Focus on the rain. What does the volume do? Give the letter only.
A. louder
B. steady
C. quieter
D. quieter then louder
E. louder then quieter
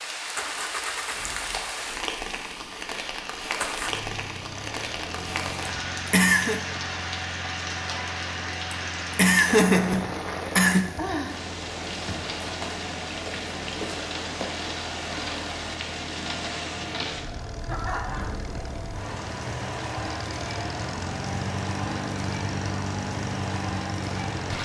B.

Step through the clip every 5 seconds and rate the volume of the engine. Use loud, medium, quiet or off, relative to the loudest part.
loud, medium, medium, medium, loud.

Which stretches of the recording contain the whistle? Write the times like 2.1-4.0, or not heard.
not heard.